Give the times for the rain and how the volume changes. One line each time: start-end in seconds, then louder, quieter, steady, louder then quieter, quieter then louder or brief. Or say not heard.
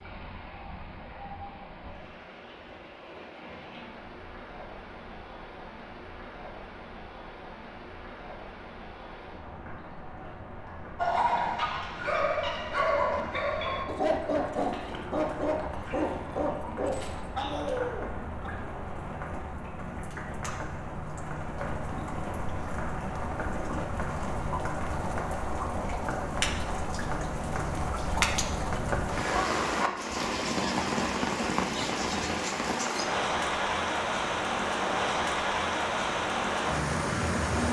0.0-37.6 louder.